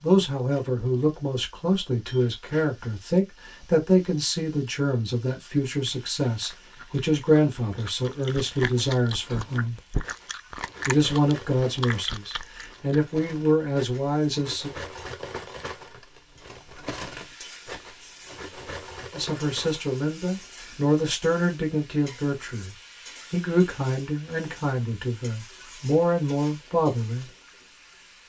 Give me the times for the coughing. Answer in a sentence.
You can't hear the coughing here.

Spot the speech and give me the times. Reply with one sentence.
The speech can be heard from 0.0 to 9.8 s, from 10.8 to 14.7 s and from 19.1 to 27.3 s.